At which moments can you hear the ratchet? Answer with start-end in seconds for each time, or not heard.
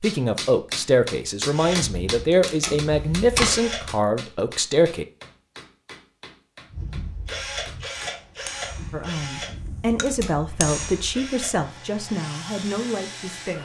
not heard.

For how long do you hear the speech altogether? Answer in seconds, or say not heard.
10 s.